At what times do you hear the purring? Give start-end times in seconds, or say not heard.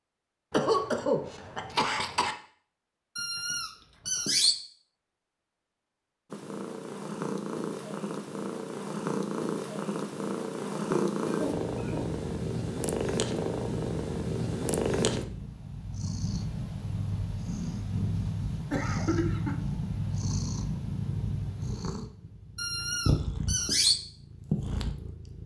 6.3-25.4.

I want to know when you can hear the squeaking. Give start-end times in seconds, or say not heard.
3.1-4.5, 22.6-24.0.